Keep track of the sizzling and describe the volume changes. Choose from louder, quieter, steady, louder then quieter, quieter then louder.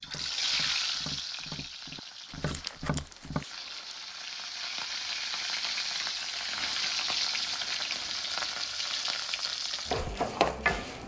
quieter then louder.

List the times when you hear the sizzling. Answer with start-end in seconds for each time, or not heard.
0.0-11.0.